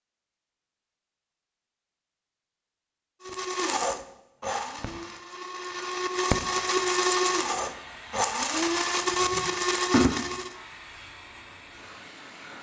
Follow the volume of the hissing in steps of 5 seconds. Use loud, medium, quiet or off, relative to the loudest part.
off, loud, loud.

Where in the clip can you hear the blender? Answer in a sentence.
The blender can be heard from 3.2 to 10.6 s.